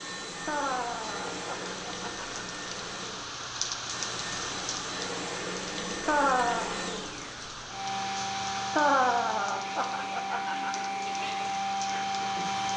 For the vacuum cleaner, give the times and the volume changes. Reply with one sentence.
You can hear the vacuum cleaner from 0.0 to 12.7 s, getting louder.